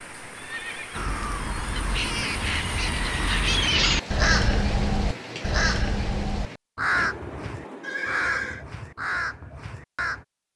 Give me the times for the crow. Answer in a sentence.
You can hear the crow from 0.9 to 10.2 s.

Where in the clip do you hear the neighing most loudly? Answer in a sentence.
The volume of the neighing peaks at 8 seconds.